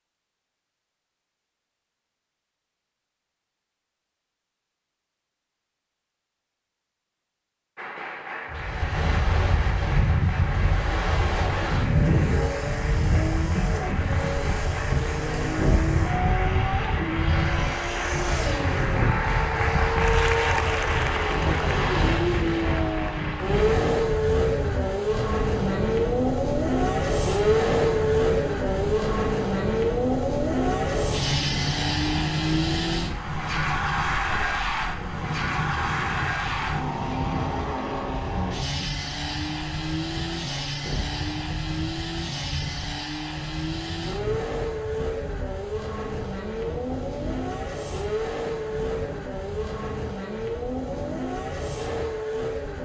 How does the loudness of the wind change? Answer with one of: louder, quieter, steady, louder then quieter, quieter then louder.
quieter.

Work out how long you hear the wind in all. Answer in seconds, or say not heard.
44 s.